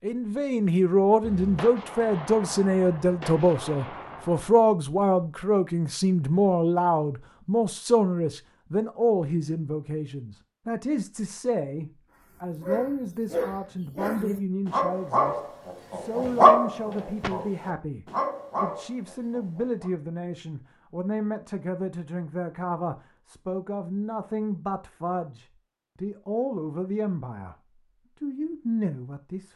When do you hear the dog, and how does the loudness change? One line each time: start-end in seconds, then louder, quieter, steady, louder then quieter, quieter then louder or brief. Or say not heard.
12.6-19.9 louder then quieter.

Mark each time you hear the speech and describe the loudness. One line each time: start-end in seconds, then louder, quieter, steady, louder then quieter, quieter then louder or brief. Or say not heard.
0.0-27.6 quieter
28.2-29.5 brief.